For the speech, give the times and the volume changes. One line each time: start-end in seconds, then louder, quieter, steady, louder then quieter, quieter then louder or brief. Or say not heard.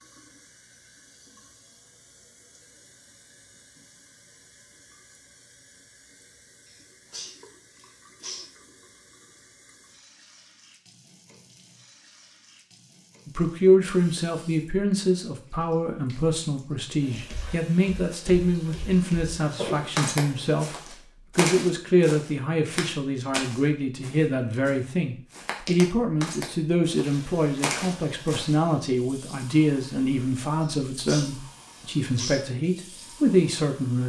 13.2-34.0 steady.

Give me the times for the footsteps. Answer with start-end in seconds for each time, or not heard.
17.1-28.6.